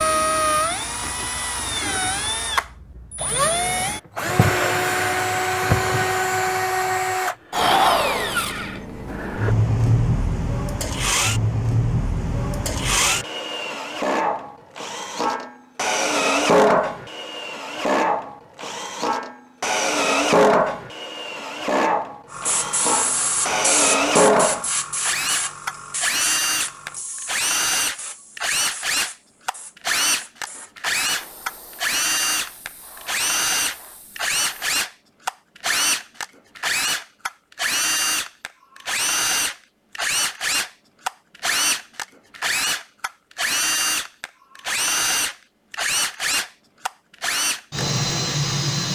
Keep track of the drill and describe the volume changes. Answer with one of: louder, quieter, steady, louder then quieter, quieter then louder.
steady.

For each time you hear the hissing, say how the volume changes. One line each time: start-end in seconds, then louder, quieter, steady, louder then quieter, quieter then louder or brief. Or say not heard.
22.3-34.8 quieter.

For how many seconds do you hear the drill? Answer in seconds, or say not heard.
49 s.